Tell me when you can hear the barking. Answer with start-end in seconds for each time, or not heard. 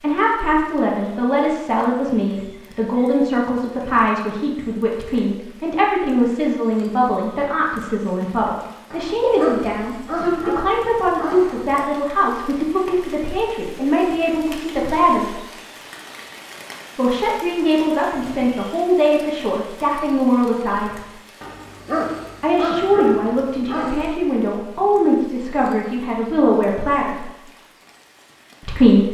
8.9-11.7, 21.4-24.2.